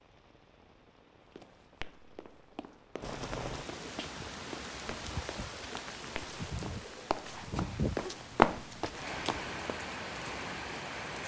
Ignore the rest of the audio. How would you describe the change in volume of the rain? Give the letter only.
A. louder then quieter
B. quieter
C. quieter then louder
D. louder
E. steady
D.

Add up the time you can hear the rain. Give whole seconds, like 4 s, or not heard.
11 s.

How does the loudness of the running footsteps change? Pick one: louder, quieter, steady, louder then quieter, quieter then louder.
louder.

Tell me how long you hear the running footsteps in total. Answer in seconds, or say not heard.
8 s.